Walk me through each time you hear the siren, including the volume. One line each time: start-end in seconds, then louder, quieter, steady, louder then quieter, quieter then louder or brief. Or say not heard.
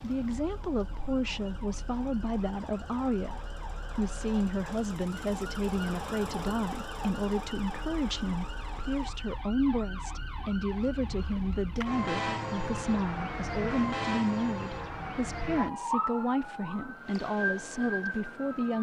0.0-18.7 louder.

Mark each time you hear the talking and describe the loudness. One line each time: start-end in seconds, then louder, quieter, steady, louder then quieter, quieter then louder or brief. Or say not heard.
0.0-18.7 steady.